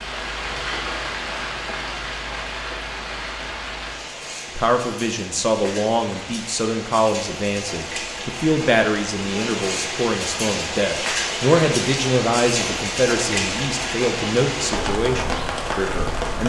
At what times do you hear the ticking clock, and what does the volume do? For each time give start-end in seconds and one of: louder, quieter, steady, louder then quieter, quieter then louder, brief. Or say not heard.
not heard.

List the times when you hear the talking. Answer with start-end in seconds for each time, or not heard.
4.5-16.4.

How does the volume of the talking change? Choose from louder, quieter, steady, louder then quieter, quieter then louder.
steady.